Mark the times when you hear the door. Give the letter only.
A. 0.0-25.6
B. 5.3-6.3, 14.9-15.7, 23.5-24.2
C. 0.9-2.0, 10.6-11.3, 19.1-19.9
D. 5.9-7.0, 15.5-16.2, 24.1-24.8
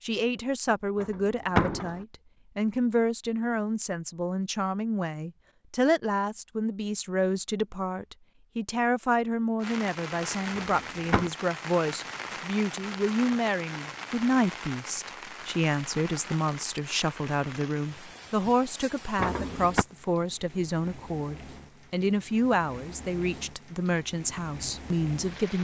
C.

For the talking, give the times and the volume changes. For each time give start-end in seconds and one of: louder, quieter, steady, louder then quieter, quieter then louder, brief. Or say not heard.
0.0-25.6 steady.